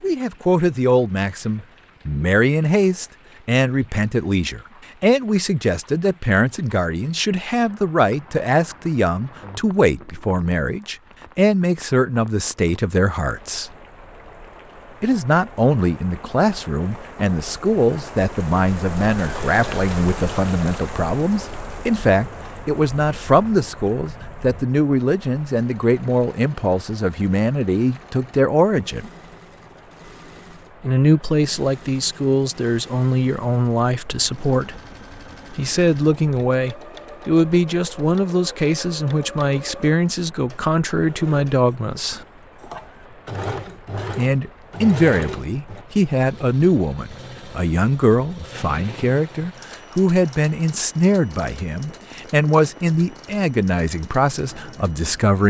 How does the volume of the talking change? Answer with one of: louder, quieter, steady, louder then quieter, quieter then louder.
steady.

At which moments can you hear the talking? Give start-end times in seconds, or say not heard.
0.0-13.7, 15.0-29.1, 30.8-34.8, 35.5-42.2, 44.0-55.4.